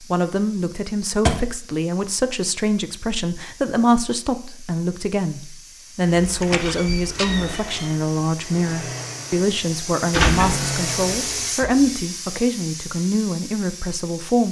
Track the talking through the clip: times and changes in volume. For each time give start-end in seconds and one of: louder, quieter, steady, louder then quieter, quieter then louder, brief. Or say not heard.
0.1-14.4 steady.